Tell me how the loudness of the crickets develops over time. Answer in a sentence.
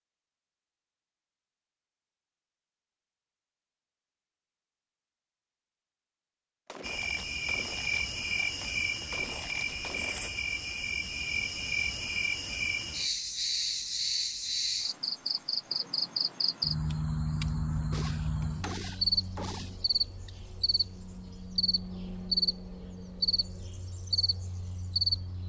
The volume of the crickets stays about the same.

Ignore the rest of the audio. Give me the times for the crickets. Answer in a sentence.
You can hear the crickets from 6.8 to 25.4 s.